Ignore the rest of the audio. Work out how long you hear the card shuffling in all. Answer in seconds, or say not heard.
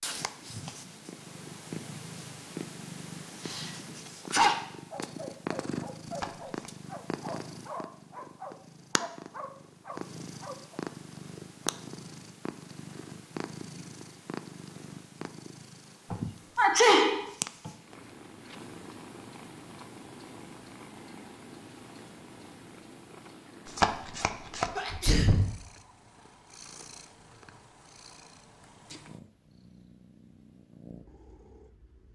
2 s.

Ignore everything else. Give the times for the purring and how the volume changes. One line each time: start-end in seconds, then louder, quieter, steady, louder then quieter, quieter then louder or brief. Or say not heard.
0.0-32.1 quieter.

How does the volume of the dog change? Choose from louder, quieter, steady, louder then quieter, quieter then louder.
steady.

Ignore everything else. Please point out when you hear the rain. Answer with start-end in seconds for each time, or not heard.
not heard.